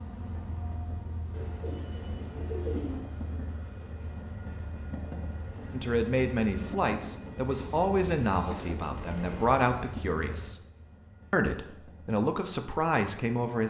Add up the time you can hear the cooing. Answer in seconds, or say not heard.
4 s.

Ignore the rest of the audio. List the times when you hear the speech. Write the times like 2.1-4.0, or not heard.
5.7-10.6, 11.3-13.6.